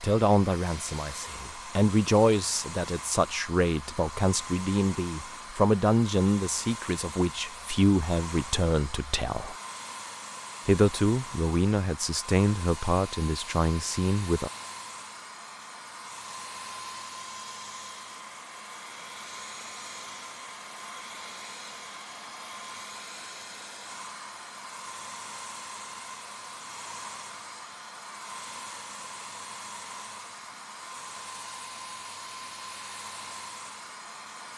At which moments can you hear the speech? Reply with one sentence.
The speech can be heard from 0.0 to 9.6 s and from 10.7 to 14.5 s.